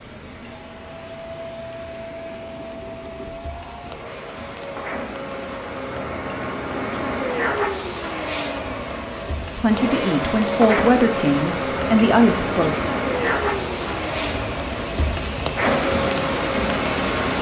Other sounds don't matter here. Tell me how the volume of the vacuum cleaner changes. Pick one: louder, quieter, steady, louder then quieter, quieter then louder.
louder.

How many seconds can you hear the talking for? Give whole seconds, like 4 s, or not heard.
3 s.